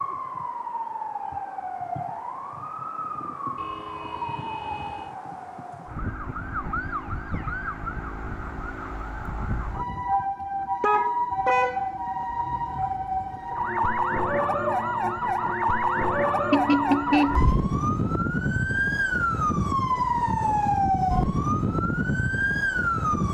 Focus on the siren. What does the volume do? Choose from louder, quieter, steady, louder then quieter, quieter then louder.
louder.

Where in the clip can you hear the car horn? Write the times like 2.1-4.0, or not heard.
3.5-5.2, 10.8-11.8, 16.5-17.4.